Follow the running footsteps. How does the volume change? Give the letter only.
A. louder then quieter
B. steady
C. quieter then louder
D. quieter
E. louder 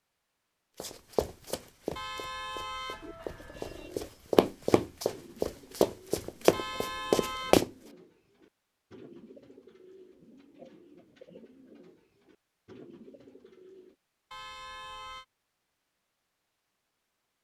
E.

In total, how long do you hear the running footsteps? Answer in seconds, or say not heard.
7 s.